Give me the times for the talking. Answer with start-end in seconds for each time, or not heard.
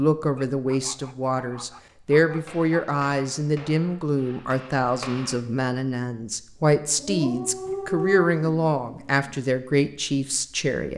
0.0-10.9.